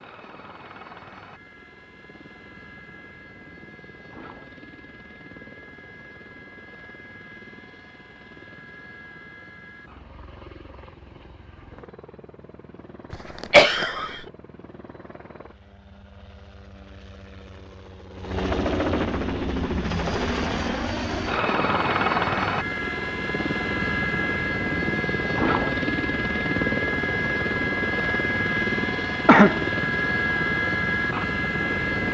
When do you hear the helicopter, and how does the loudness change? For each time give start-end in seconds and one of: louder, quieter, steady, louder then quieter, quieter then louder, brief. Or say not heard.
0.0-32.0 louder.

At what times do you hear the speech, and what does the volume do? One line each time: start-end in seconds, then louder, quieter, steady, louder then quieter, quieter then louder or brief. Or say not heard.
not heard.